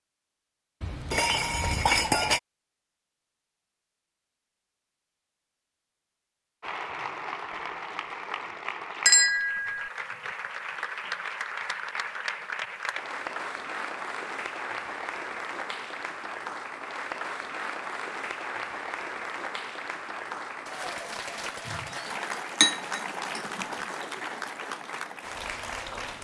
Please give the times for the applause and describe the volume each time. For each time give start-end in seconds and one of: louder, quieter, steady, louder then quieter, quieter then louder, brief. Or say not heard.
6.6-26.1 steady.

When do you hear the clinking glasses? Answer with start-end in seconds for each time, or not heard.
0.8-2.4, 9.1-9.9, 22.6-23.6.